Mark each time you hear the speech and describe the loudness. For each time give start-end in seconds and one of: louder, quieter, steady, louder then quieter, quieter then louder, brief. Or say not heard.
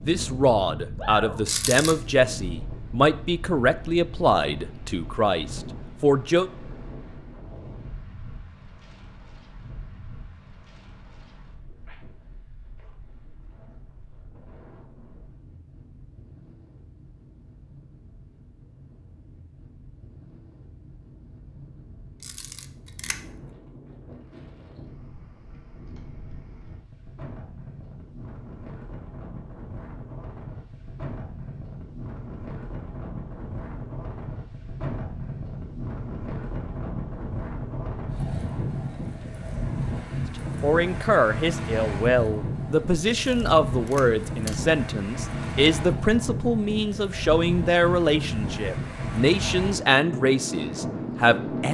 0.0-6.5 steady
40.6-51.6 steady.